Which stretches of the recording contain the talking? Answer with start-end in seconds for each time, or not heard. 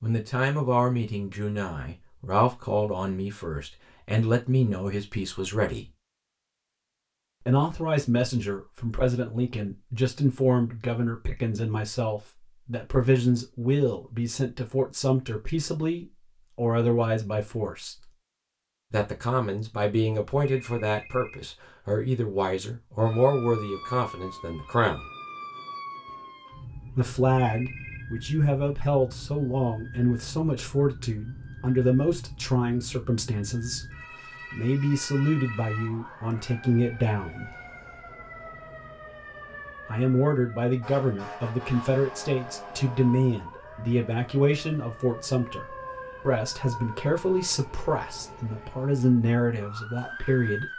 0.0-5.9, 7.4-18.1, 18.9-25.1, 26.9-33.8, 34.5-37.5, 39.9-50.7.